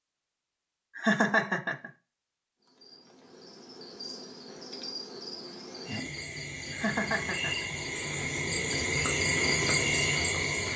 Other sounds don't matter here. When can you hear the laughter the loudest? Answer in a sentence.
The volume of the laughter peaks at 1 second.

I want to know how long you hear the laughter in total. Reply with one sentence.
You can hear the laughter for 2 seconds altogether.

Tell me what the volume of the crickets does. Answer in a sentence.
The loudness of the crickets goes up.